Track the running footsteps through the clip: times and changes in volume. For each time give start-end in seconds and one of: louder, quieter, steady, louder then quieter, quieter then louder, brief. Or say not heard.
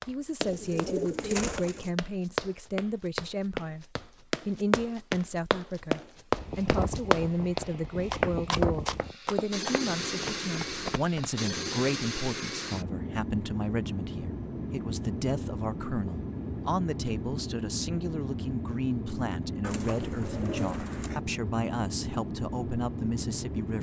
0.0-11.5 louder then quieter.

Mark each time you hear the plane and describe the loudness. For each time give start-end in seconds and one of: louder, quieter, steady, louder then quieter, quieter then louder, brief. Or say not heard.
6.3-23.7 steady.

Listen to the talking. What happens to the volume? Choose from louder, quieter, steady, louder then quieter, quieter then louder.
steady.